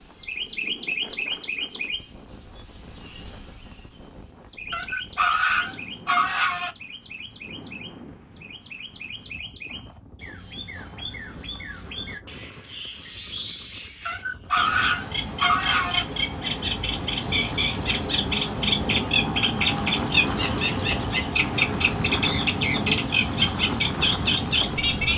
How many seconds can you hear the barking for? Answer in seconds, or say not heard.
4 s.